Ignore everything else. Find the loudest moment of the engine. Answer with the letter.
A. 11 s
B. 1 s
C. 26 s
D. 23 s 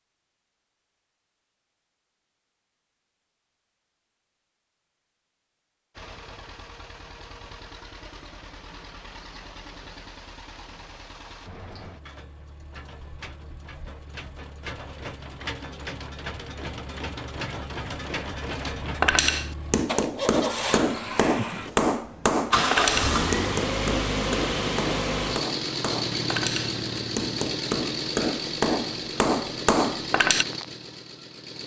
D.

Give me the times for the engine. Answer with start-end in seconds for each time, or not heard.
6.0-31.6.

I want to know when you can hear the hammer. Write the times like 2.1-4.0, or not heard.
19.0-30.4.